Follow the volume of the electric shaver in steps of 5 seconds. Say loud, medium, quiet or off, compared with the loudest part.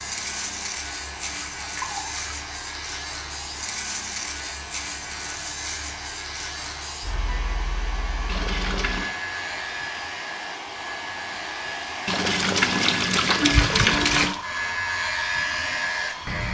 medium, medium, medium, loud.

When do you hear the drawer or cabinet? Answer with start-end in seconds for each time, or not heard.
not heard.